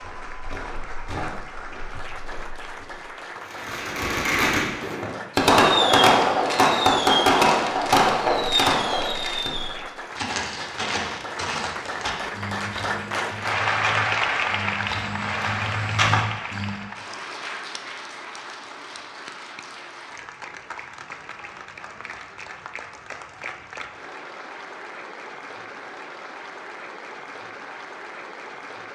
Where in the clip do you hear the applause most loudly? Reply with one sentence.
The loudest moment of the applause is at 14 seconds.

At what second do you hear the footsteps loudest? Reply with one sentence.
The loudest moment of the footsteps is at 16 seconds.